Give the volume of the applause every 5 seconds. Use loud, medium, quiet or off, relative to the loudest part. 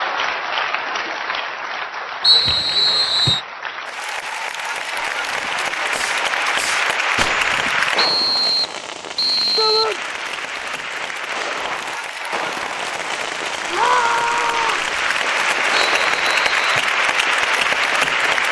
medium, loud, medium, loud.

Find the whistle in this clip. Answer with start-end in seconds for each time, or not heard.
2.2-3.4, 8.0-9.9, 15.8-16.9.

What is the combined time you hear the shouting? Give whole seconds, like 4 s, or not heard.
2 s.